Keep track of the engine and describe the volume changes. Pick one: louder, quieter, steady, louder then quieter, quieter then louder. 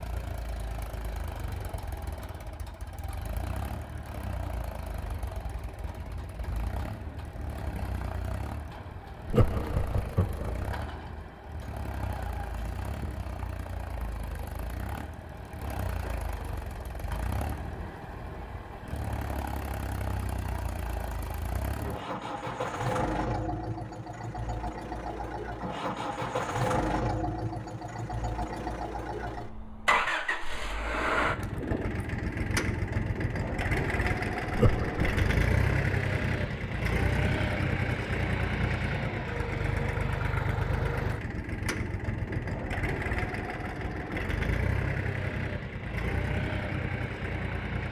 louder.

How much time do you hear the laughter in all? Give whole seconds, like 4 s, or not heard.
2 s.